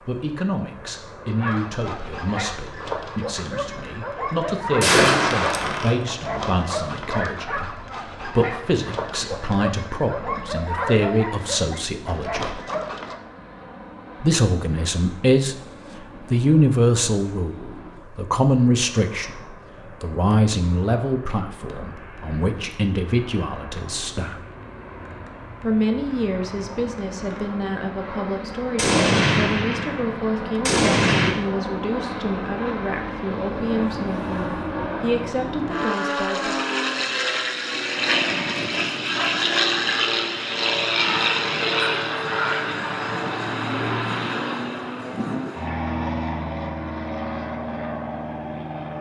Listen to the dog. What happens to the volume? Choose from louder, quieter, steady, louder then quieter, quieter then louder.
steady.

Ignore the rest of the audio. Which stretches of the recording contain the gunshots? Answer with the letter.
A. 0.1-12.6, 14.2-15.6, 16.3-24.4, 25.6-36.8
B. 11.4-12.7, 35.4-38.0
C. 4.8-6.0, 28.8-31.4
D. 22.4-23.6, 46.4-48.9
C.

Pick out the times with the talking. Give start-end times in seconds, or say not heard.
0.1-12.6, 14.2-15.6, 16.3-24.4, 25.6-36.8.